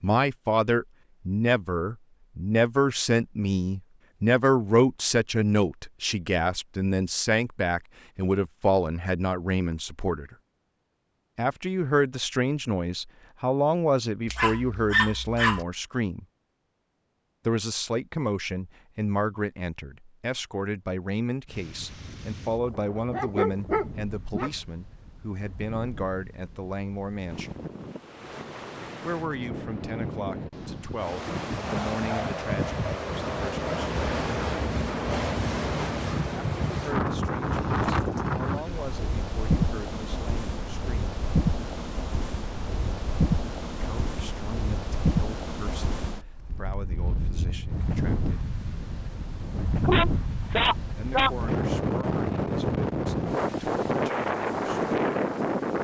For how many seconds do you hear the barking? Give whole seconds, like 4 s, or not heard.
4 s.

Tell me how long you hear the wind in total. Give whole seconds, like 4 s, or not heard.
34 s.